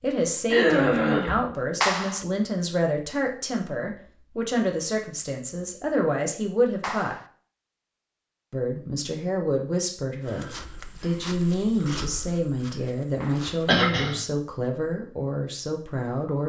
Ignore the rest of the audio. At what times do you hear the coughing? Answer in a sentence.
The coughing can be heard from 0.5 to 1.4 s and from 13.7 to 14.2 s.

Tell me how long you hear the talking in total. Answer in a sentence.
You can hear the talking for 15 seconds altogether.